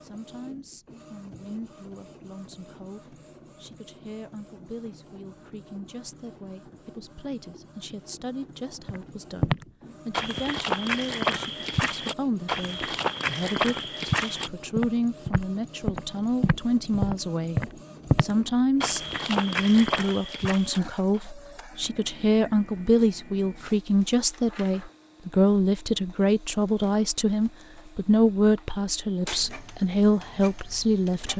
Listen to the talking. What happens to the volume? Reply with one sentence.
The loudness of the talking goes up.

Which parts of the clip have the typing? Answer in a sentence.
You can't hear the typing here.